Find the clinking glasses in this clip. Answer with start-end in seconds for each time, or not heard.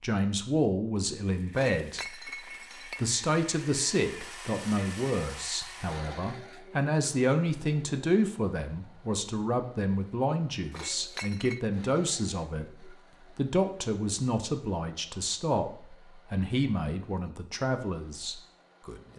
1.5-3.0, 10.7-11.6.